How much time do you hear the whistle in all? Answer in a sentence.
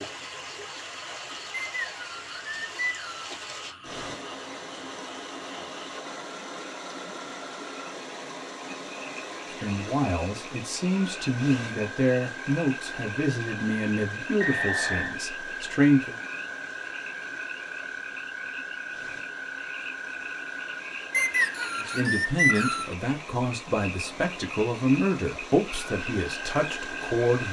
You can hear the whistle for 4 seconds altogether.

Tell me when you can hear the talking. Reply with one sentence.
You can hear the talking from 9.6 to 16.1 s and from 21.8 to 27.4 s.